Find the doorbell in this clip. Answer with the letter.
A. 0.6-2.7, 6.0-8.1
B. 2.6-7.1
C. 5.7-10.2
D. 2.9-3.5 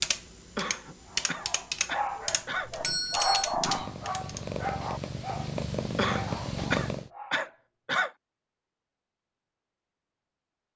D.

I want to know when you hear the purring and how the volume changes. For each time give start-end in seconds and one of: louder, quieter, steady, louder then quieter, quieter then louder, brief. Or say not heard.
2.6-7.1 louder.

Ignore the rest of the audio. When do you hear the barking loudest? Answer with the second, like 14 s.
3 s.